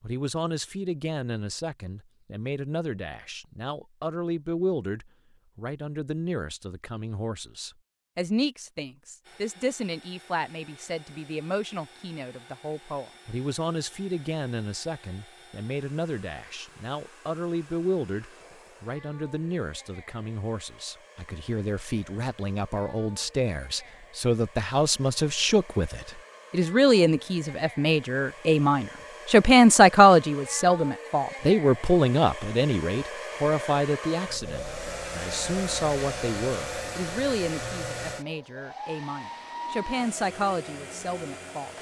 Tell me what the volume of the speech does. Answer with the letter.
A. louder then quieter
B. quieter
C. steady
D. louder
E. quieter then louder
A.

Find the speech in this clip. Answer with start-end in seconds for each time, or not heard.
0.0-41.7.